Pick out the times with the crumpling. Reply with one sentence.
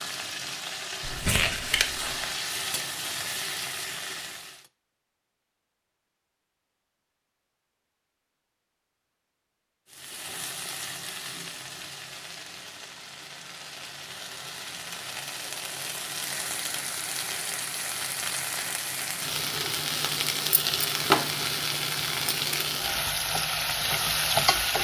The crumpling can be heard from 1.0 to 2.4 s.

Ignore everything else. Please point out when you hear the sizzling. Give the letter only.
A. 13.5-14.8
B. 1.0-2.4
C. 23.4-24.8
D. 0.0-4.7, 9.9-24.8
D.